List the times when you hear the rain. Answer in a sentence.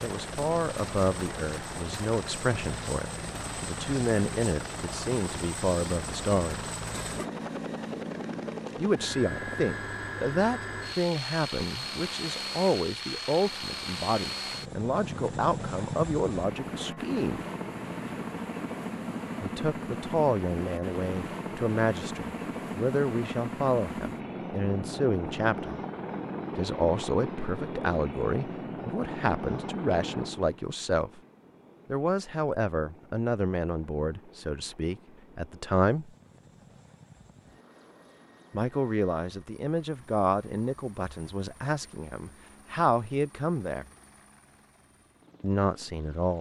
You can't hear the rain here.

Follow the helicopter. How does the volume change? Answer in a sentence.
The loudness of the helicopter goes down.